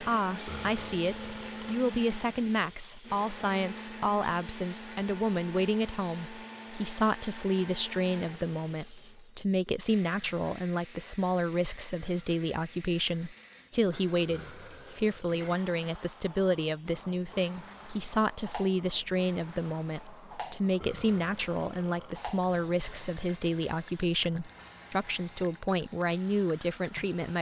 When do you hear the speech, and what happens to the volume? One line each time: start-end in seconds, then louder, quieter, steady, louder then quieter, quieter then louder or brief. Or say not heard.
0.0-27.3 steady.